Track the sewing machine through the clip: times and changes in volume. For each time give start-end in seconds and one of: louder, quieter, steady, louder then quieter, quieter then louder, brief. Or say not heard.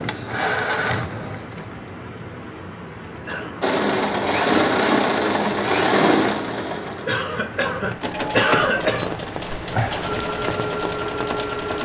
0.0-1.8 brief
3.6-11.7 quieter.